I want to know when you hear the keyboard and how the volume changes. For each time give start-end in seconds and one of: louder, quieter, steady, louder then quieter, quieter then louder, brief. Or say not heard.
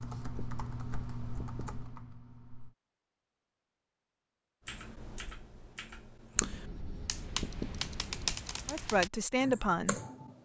0.0-2.8 brief
4.7-10.4 louder.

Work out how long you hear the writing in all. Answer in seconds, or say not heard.
4 s.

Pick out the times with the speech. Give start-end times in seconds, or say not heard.
8.7-10.0.